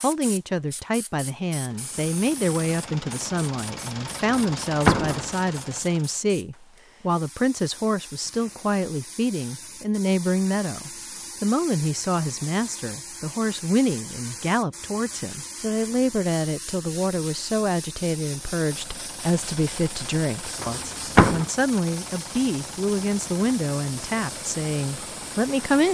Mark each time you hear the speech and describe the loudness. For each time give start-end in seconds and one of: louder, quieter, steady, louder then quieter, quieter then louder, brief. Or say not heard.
0.0-25.8 steady.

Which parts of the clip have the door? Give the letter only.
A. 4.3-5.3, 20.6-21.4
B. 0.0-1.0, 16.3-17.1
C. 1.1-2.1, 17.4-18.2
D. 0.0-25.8
A.